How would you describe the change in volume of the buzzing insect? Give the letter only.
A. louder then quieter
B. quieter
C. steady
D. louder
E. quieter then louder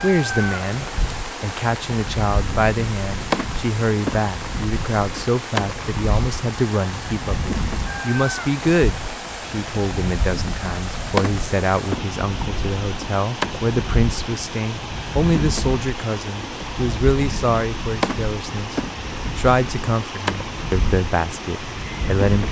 C.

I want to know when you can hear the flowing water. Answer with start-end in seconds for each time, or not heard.
0.0-22.4.